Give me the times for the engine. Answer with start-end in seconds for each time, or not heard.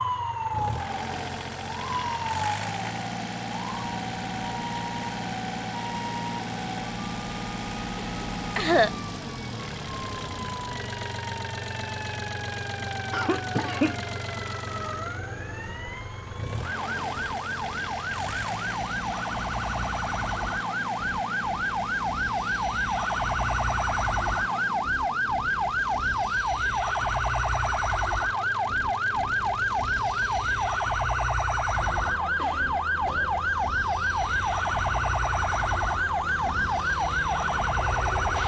0.0-38.4.